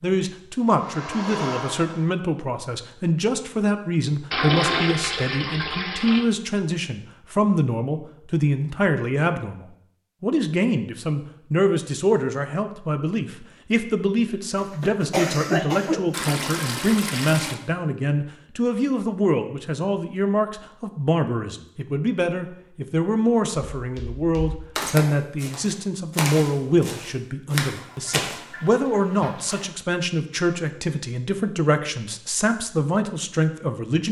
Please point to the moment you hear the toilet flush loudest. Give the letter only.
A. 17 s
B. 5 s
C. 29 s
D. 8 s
B.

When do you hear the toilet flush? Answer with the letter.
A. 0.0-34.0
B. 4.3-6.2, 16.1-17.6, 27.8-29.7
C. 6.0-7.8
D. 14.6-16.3
B.